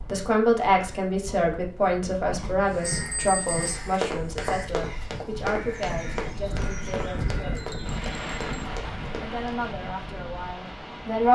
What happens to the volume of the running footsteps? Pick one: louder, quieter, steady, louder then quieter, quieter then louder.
louder then quieter.